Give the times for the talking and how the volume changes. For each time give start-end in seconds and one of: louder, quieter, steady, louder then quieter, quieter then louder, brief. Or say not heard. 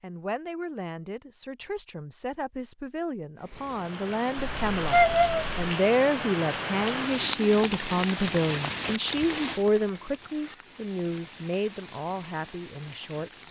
0.0-13.4 louder then quieter.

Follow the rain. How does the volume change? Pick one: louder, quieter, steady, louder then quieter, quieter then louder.
quieter.